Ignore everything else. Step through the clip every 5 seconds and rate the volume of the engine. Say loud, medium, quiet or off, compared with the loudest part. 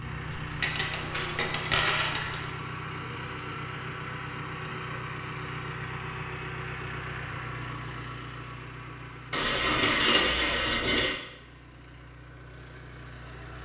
loud, loud, medium.